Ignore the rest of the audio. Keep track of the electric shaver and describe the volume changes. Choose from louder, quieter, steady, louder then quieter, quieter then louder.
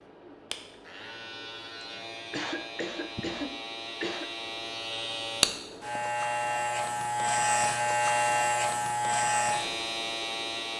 louder.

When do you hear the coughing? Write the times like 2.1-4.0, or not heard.
1.8-4.3.